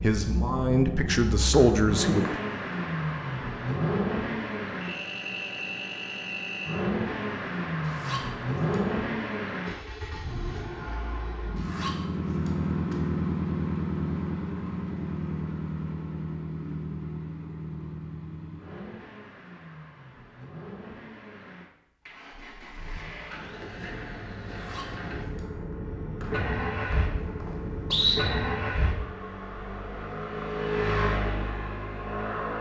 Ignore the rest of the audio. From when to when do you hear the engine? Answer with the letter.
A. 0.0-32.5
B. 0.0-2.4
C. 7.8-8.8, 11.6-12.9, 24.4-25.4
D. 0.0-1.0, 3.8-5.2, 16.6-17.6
A.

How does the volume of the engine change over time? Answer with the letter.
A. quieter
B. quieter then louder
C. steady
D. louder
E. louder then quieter
B.